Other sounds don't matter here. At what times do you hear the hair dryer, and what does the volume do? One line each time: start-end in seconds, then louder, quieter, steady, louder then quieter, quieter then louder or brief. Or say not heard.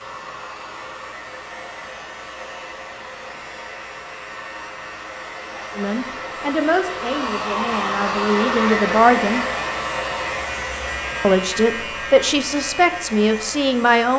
0.0-14.1 louder then quieter.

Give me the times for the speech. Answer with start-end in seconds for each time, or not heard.
5.8-9.4, 11.2-14.1.